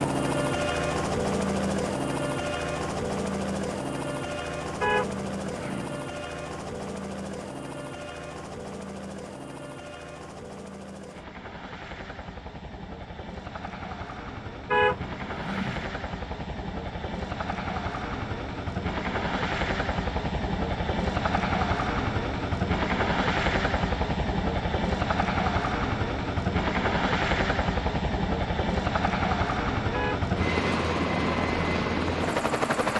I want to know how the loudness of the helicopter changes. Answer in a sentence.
The volume of the helicopter goes down, then up.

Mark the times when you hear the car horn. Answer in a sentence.
The car horn can be heard from 4.8 to 6.0 s, from 14.7 to 15.9 s and from 29.9 to 30.3 s.